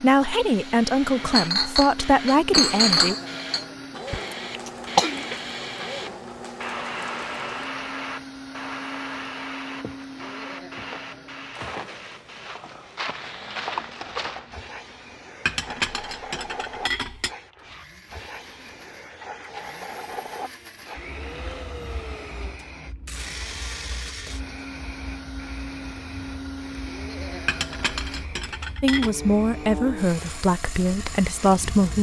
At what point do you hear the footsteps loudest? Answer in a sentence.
The volume of the footsteps peaks at 14 seconds.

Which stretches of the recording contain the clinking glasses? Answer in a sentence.
The clinking glasses can be heard from 1.3 to 3.6 s, from 15.4 to 17.3 s and from 27.4 to 29.1 s.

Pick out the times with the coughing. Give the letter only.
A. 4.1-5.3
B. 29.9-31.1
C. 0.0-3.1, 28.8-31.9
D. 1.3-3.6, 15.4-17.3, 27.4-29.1
A.